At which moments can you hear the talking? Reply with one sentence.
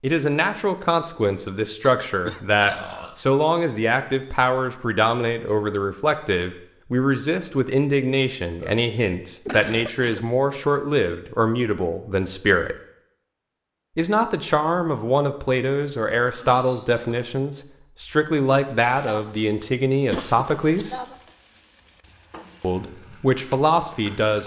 You can hear the talking from 0.0 to 12.8 s, from 13.9 to 20.9 s and from 22.6 to 24.4 s.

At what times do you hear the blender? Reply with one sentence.
You can't hear the blender here.